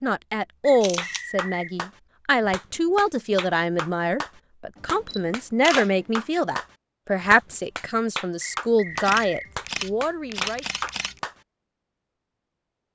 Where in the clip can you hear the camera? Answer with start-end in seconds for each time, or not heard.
0.8-1.2, 4.8-6.4, 8.9-11.2.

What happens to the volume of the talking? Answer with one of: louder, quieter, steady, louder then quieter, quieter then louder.
steady.